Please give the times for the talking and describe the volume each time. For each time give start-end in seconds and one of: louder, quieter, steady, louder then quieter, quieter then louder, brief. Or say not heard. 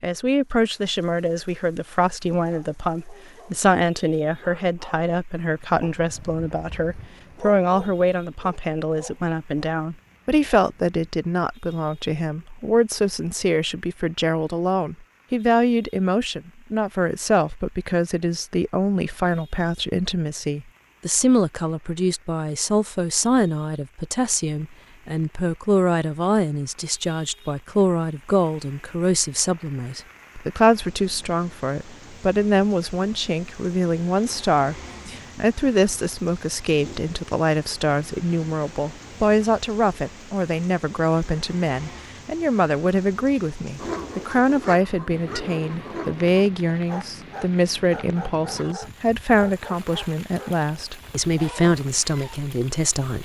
0.0-53.1 steady.